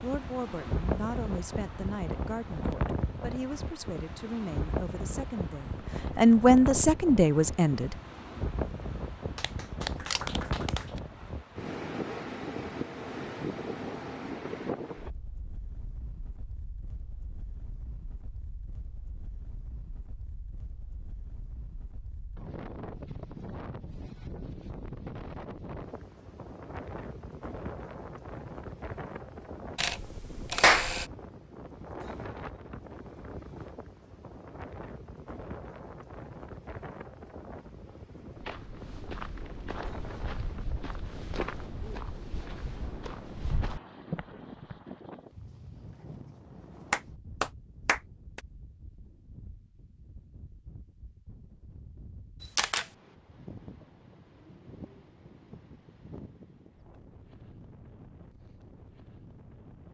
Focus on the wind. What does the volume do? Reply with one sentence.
The volume of the wind goes down.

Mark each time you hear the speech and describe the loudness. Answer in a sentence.
The speech can be heard from 0.0 to 8.0 s, getting louder.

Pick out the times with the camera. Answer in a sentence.
The camera can be heard from 10.0 to 10.4 s, from 29.8 to 31.1 s and from 52.4 to 52.9 s.